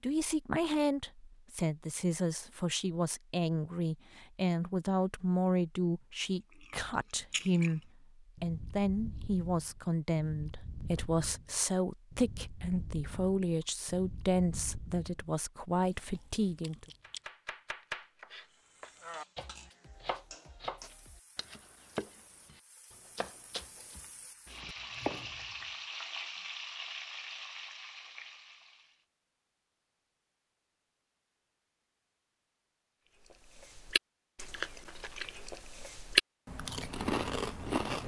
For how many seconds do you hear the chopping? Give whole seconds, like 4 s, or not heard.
9 s.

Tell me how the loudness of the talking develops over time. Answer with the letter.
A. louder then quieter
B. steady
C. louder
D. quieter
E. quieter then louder
B.